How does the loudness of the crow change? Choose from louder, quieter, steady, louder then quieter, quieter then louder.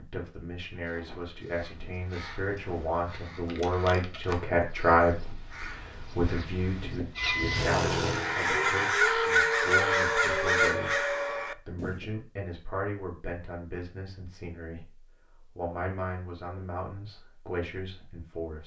louder.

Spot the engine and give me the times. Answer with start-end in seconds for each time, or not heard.
7.2-9.0.